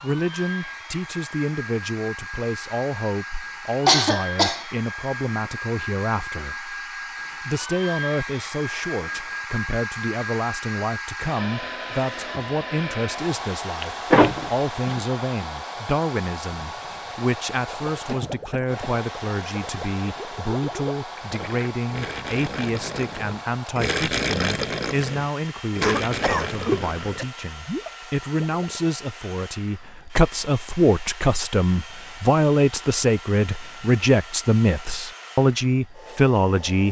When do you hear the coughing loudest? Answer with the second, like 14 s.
4 s.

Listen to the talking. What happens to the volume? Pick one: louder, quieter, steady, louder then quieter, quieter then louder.
louder.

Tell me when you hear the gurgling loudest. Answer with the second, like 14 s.
24 s.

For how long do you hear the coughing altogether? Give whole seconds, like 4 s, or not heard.
3 s.